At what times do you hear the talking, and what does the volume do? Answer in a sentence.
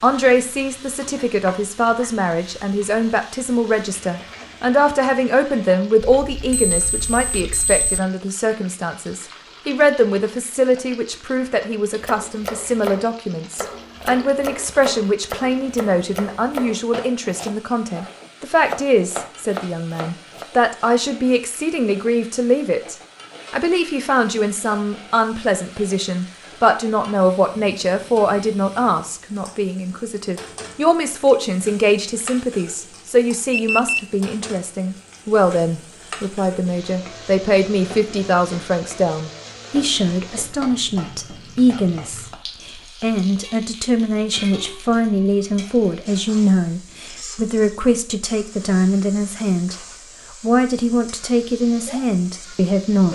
You can hear the talking from 0.0 to 49.8 s, at a steady volume; and briefly from 50.4 to 53.1 s.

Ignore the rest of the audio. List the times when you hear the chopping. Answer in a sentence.
You can hear the chopping from 12.0 to 20.4 s.